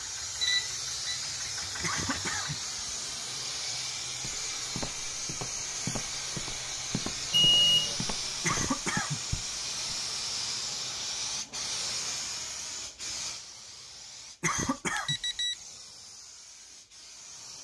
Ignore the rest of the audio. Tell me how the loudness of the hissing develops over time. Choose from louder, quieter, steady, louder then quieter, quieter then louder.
quieter.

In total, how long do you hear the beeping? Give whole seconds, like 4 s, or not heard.
2 s.